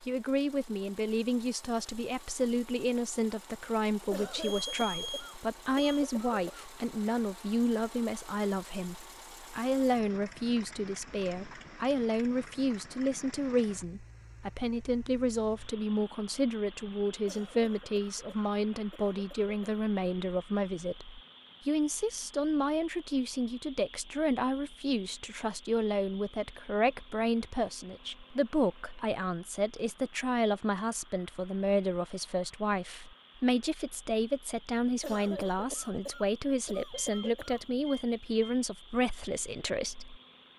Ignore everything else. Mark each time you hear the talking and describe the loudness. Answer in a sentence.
The talking can be heard from 0.0 to 40.5 s, at a steady volume.